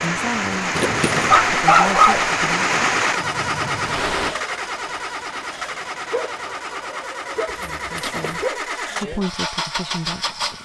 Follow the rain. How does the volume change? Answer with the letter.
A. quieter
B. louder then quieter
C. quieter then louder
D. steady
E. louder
A.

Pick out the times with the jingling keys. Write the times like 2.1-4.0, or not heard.
0.8-1.4, 7.5-8.4.